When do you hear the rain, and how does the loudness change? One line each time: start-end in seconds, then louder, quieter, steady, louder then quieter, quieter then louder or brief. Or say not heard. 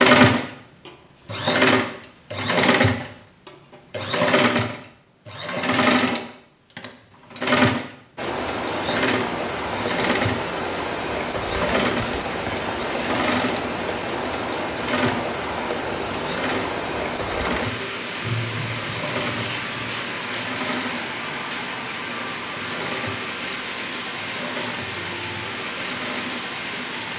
8.2-27.1 steady.